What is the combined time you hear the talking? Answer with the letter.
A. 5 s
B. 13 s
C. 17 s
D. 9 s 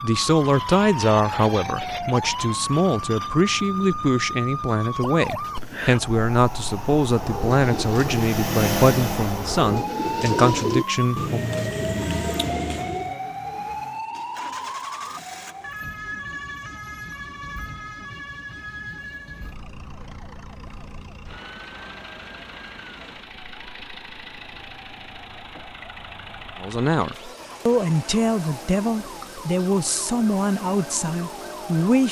C.